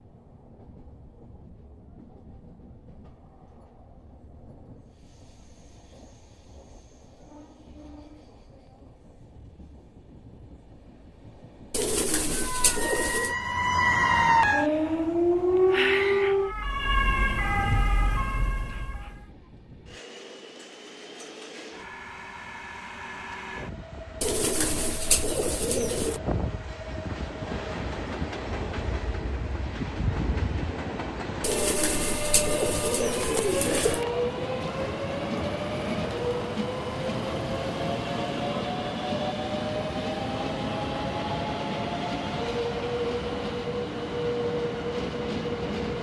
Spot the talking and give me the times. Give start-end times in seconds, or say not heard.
not heard.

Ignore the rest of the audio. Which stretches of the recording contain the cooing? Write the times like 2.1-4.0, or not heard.
11.7-13.3, 24.2-26.2, 31.4-34.0.